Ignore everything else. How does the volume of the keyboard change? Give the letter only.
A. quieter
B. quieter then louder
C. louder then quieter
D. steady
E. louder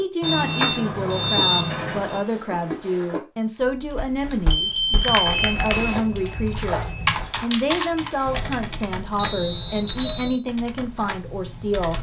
C.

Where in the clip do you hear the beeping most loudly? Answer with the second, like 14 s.
10 s.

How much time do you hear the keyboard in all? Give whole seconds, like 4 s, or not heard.
7 s.